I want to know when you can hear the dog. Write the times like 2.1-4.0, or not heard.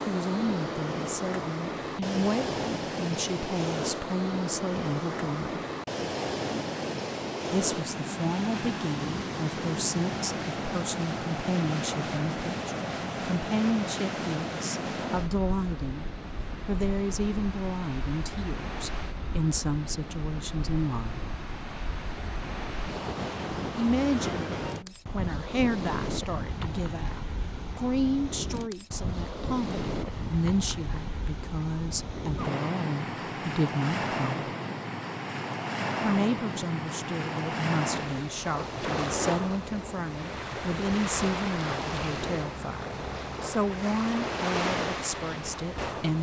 not heard.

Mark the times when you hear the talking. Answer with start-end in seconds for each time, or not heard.
0.1-5.6, 7.5-21.2, 23.8-34.5, 36.0-46.1.